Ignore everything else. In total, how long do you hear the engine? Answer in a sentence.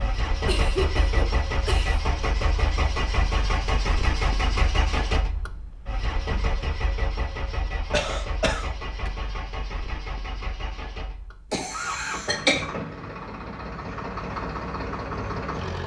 The engine can be heard for 16 seconds in total.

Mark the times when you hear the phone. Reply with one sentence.
You can't hear the phone here.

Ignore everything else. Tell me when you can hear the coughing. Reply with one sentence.
You can hear the coughing from 0.5 to 2.0 s, from 7.9 to 9.1 s and from 11.5 to 12.7 s.